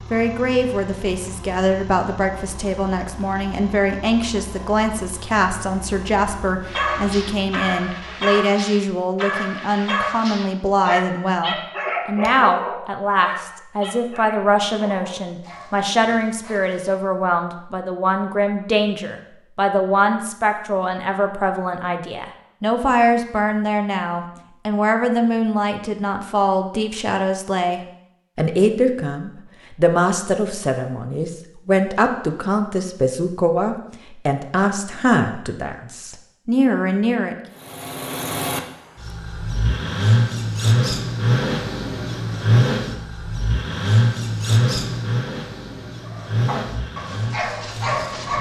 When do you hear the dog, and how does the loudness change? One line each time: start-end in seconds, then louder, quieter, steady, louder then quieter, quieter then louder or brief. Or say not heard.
6.7-17.0 quieter
46.0-48.3 brief.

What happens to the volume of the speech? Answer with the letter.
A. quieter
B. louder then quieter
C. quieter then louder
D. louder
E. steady
E.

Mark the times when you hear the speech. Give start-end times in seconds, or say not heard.
0.1-37.4.